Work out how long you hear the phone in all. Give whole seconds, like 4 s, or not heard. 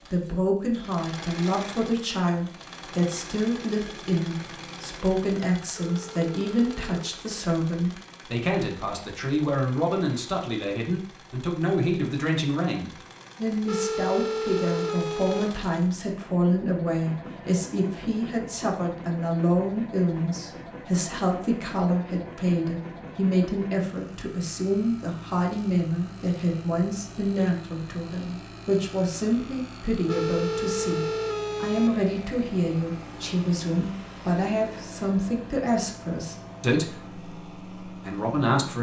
5 s.